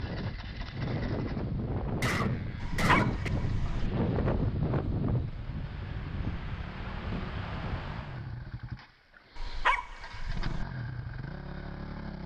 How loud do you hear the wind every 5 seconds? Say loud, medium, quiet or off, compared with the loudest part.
loud, medium, off.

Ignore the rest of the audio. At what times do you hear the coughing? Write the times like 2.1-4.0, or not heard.
2.0-3.3.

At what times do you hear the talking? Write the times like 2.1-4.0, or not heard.
not heard.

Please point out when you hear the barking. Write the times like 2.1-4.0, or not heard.
2.6-3.9, 9.3-10.7.